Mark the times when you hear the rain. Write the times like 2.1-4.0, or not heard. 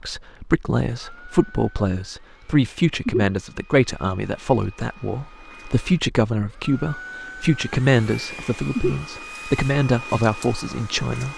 not heard.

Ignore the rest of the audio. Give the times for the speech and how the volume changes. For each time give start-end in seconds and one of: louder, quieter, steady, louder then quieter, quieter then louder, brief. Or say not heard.
0.0-11.3 steady.